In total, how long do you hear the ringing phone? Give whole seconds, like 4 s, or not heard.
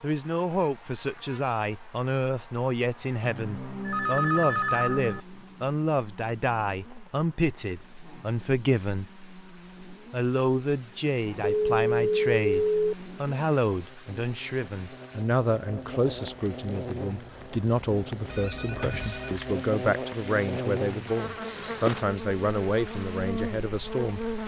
5 s.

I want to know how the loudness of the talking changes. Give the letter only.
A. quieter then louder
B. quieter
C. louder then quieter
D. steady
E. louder
D.